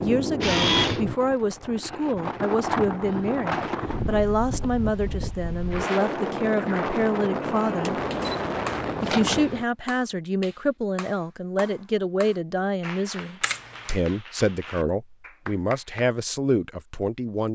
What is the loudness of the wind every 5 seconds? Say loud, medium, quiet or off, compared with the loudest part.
loud, loud, off, off.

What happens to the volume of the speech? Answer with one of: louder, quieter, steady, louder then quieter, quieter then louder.
steady.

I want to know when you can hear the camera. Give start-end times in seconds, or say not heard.
0.4-1.0, 8.0-9.7, 13.4-13.9.